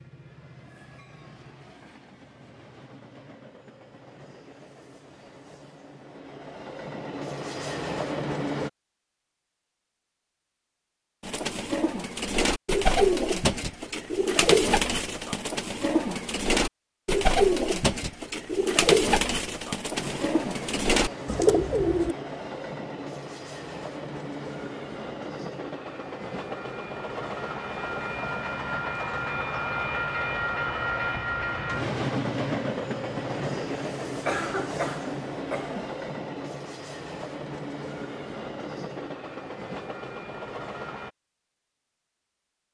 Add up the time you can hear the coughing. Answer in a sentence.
The coughing can be heard for 2 seconds in total.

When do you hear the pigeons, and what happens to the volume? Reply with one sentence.
You can hear the pigeons from 11.2 to 22.1 s, at a steady volume.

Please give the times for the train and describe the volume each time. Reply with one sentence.
The train can be heard from 0.0 to 8.7 s, getting louder; and from 19.9 to 41.1 s, getting louder then quieter.